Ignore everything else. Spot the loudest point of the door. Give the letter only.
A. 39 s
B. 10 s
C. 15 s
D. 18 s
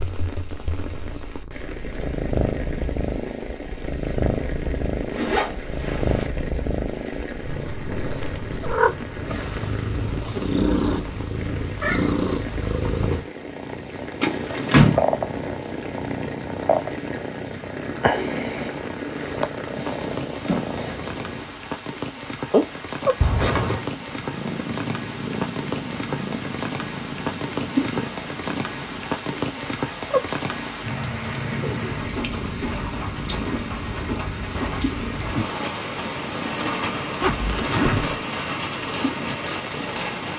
C.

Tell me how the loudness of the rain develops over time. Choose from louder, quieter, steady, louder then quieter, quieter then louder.
louder.